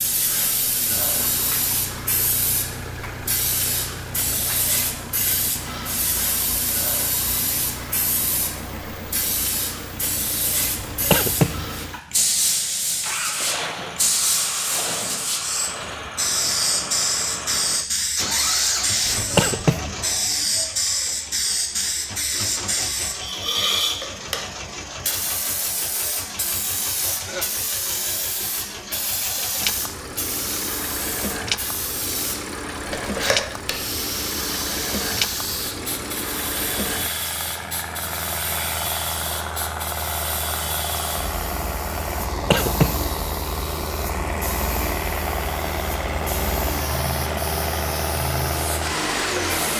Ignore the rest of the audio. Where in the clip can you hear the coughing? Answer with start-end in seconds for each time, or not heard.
10.8-11.7, 19.1-19.9, 42.3-43.1.